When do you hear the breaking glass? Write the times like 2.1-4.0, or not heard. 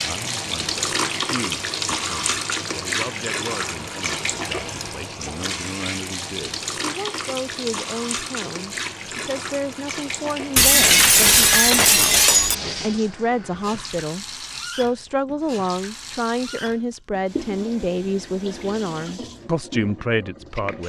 10.6-12.6.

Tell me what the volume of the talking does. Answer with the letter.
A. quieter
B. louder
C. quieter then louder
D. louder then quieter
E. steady
B.